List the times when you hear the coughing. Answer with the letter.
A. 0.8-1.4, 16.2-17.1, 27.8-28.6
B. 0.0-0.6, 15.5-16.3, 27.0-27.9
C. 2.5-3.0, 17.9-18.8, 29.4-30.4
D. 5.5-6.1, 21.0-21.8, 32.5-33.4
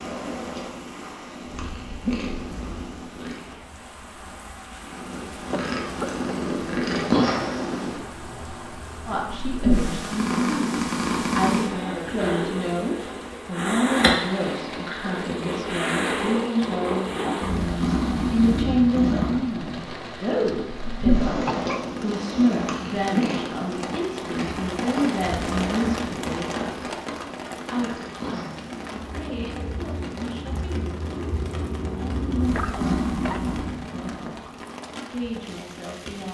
D.